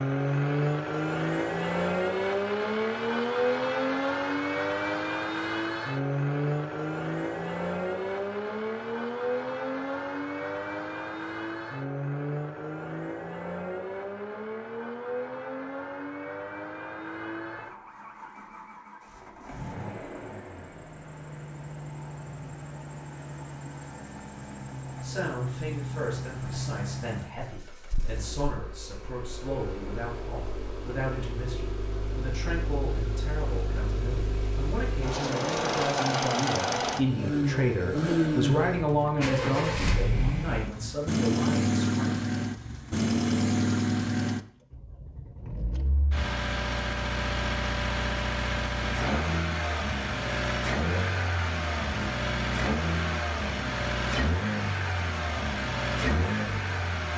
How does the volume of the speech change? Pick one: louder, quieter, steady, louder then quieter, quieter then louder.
louder.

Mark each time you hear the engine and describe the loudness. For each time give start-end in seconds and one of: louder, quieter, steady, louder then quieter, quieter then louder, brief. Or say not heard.
0.0-57.1 quieter then louder.